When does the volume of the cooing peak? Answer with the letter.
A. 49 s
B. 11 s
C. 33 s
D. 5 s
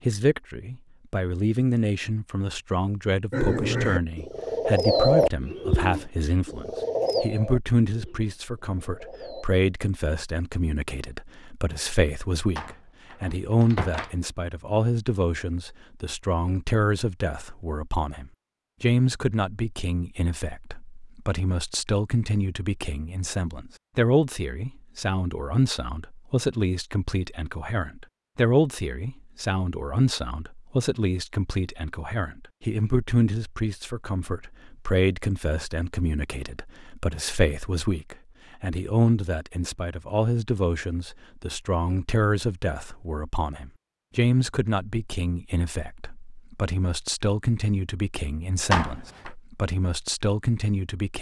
D.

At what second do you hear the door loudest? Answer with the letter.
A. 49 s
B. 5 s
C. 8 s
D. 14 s
A.